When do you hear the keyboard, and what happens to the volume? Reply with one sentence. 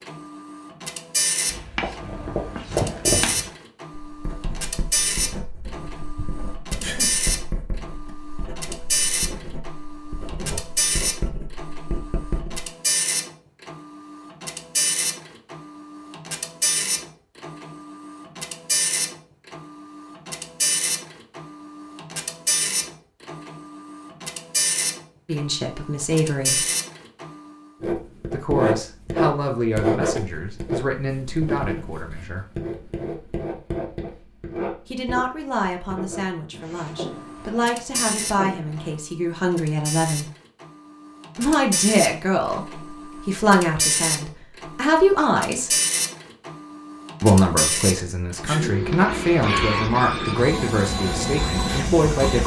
You can't hear the keyboard here.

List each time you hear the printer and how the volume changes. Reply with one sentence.
You can hear the printer from 0.0 to 27.6 s, at a steady volume; and from 36.7 to 52.4 s, getting louder.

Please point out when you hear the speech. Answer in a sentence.
The speech can be heard from 25.2 to 26.6 s, from 28.3 to 32.5 s, from 34.9 to 40.2 s, from 41.4 to 45.7 s and from 47.2 to 52.4 s.